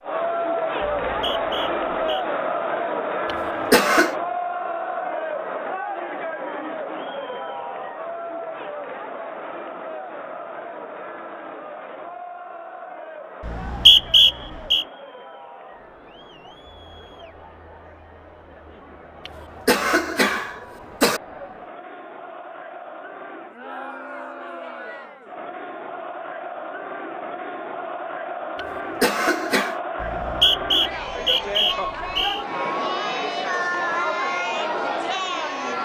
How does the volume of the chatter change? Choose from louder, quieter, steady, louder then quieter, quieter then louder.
quieter then louder.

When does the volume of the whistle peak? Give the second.
14 s.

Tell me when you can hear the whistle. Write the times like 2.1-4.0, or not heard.
0.8-2.2, 13.4-14.8, 30.0-32.5.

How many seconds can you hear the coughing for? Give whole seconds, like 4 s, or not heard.
4 s.